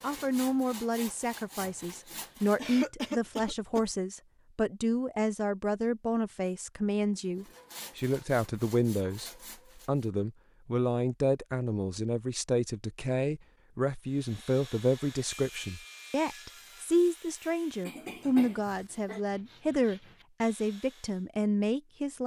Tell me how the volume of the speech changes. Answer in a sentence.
The volume of the speech stays about the same.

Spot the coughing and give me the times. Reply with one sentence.
You can hear the coughing from 2.5 to 3.9 s and from 17.9 to 19.2 s.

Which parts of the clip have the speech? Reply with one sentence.
The speech can be heard from 0.0 to 22.2 s.